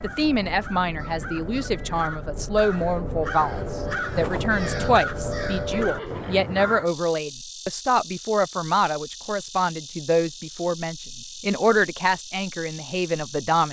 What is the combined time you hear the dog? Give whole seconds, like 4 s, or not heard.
not heard.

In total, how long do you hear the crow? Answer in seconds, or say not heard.
7 s.